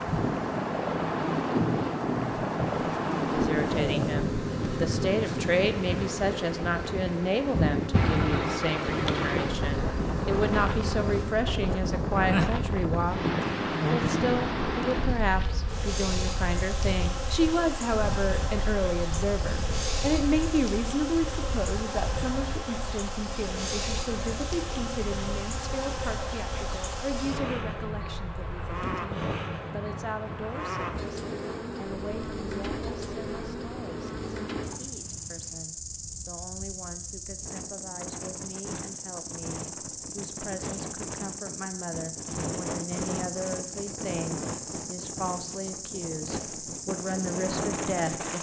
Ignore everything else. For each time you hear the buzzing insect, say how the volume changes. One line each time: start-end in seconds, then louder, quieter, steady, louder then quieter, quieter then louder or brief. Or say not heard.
0.0-48.3 steady.